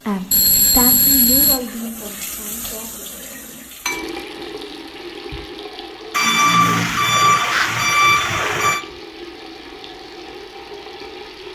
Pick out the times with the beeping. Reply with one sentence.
The beeping can be heard from 0.3 to 1.6 s and from 6.1 to 8.8 s.